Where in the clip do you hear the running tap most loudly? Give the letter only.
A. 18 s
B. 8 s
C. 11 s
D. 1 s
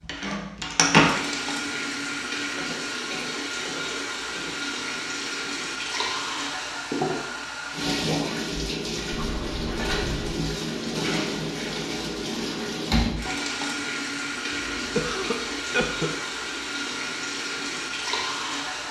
D.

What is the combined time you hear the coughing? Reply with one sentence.
You can hear the coughing for 5 seconds altogether.